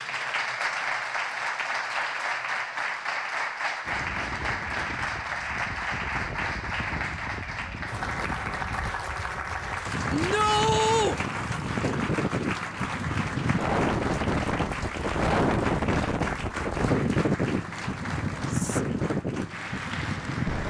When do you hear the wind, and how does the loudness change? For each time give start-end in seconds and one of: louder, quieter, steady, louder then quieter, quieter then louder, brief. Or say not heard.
3.9-20.6 louder.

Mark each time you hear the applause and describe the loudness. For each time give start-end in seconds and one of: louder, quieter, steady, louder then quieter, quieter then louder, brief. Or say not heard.
0.0-20.6 quieter.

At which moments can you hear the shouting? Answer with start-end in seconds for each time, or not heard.
10.1-11.2.